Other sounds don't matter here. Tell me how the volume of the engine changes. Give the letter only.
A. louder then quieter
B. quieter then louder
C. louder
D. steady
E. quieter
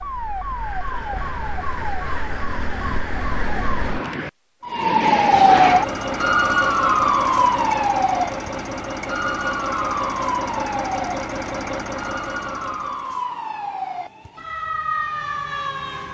D.